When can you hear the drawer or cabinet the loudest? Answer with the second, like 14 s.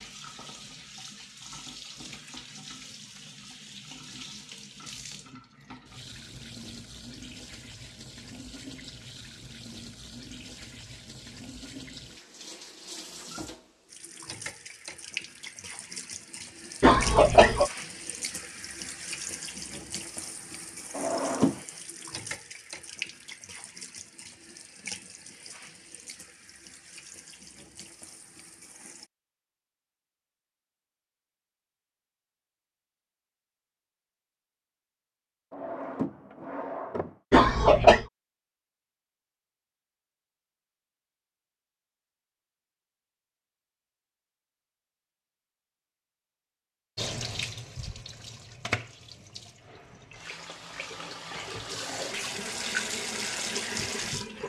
21 s.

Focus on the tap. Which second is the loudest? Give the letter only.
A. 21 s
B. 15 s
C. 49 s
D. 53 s
D.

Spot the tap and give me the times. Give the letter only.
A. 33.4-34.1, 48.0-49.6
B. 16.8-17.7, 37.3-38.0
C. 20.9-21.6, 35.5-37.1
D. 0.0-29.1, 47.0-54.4
D.